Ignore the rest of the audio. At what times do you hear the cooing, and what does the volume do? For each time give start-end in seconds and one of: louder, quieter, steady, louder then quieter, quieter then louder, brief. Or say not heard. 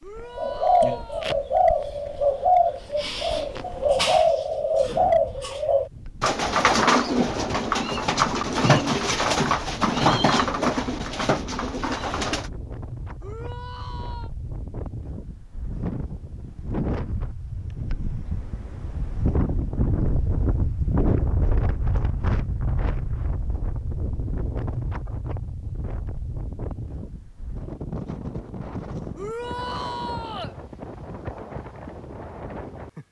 0.3-12.5 steady.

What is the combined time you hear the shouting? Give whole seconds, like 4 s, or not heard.
4 s.